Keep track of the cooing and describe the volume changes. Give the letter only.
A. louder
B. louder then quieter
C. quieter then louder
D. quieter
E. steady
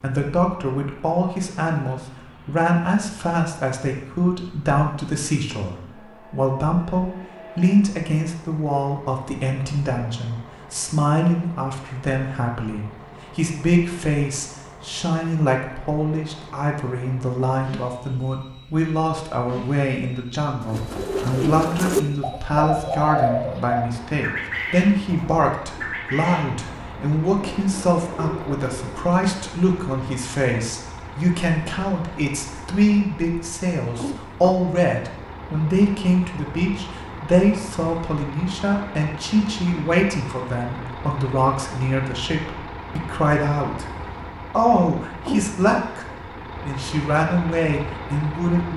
D.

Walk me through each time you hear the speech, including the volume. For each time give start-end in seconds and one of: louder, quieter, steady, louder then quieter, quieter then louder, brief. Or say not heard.
0.0-43.9 steady
44.5-46.0 brief
46.6-48.7 brief.